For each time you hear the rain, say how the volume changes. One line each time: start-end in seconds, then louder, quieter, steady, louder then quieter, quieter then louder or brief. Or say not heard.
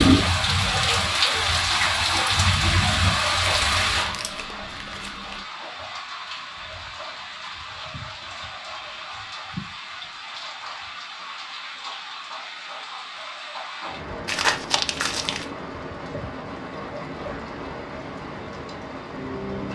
0.0-19.6 quieter.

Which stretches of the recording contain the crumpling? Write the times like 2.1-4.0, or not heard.
3.5-5.5, 14.2-15.4.